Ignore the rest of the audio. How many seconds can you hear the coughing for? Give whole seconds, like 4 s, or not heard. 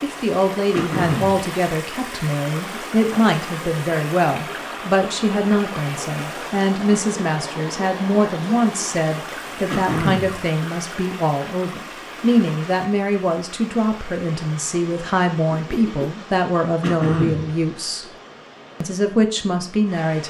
2 s.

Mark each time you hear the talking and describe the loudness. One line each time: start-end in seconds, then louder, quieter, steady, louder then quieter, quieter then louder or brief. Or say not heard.
0.0-18.1 steady
18.8-20.2 brief.